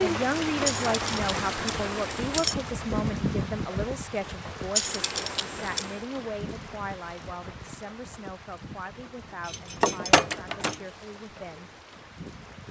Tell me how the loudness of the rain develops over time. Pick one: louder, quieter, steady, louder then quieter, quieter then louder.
quieter.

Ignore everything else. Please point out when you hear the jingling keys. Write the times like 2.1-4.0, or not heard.
0.7-2.5, 4.8-6.0, 9.4-10.8.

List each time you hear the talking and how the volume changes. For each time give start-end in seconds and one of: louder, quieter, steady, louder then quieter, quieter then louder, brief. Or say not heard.
0.0-11.7 quieter.